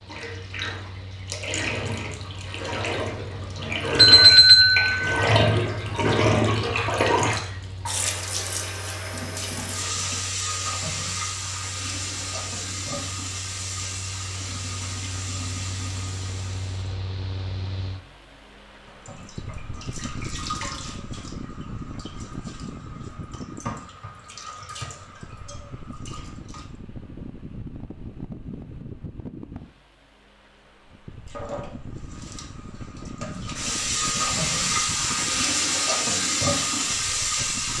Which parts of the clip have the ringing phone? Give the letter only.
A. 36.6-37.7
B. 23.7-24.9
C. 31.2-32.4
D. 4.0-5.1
D.